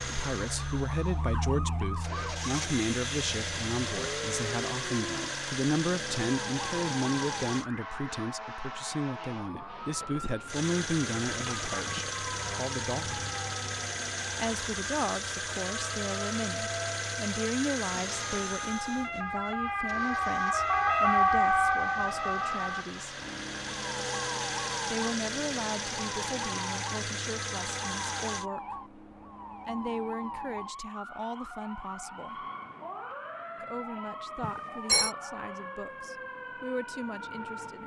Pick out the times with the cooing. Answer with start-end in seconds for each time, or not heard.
not heard.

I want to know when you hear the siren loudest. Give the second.
21 s.